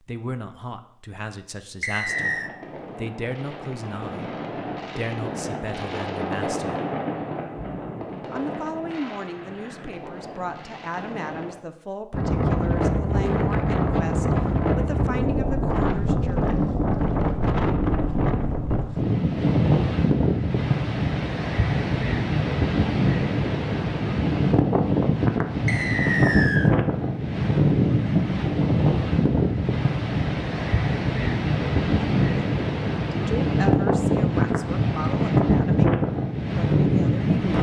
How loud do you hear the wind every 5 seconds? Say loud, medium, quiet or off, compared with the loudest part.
off, off, loud, loud, loud, loud, loud, loud.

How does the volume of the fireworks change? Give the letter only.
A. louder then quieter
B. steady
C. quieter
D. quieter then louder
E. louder
A.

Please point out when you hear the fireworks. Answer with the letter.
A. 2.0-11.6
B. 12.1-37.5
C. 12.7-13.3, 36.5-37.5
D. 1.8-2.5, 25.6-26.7
A.